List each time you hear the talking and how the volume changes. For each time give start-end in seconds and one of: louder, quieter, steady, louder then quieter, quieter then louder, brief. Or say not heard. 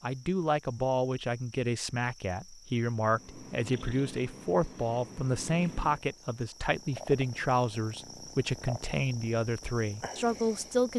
0.0-10.9 steady.